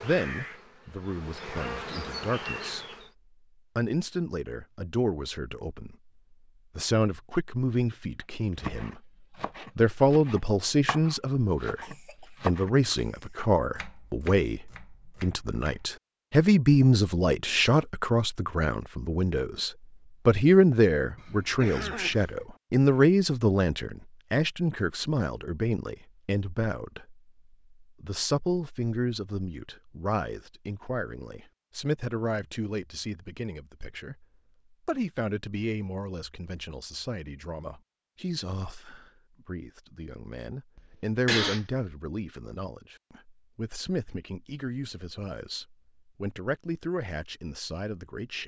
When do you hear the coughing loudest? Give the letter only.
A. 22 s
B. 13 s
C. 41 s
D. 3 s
C.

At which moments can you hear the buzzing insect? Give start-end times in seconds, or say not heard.
0.0-3.1.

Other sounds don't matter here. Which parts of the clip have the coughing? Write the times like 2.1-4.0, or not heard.
11.8-13.5, 21.1-22.4, 40.8-41.8.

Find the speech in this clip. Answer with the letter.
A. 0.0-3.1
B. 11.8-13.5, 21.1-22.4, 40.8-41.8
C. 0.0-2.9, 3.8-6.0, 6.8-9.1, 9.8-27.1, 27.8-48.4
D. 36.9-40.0
C.